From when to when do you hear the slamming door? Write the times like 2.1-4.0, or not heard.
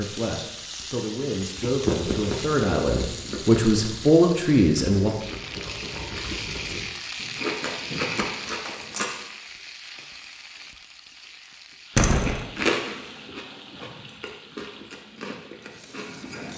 11.9-12.4.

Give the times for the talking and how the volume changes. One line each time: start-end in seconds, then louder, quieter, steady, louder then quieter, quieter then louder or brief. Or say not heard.
0.0-5.1 louder.